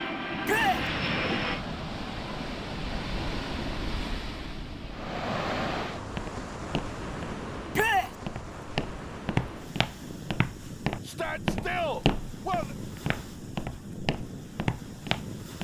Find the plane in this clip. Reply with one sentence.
You can hear the plane from 0.0 to 1.6 s.